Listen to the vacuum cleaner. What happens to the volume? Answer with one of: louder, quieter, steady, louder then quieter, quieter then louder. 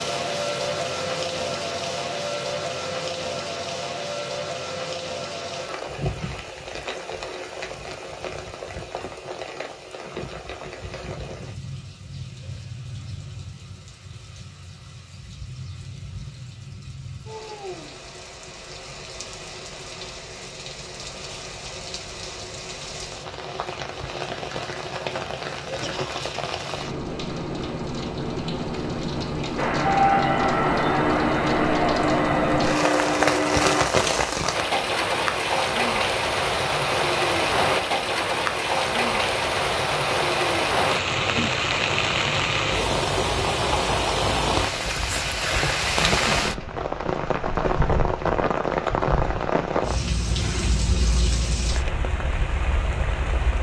steady.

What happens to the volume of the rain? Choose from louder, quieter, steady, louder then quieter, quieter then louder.
quieter then louder.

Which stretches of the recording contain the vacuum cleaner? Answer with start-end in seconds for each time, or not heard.
29.6-33.9.